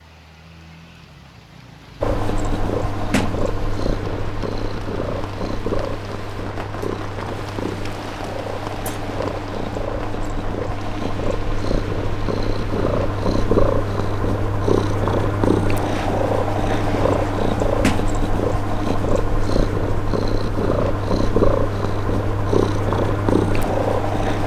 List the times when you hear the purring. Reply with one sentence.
You can hear the purring from 2.0 to 24.4 s.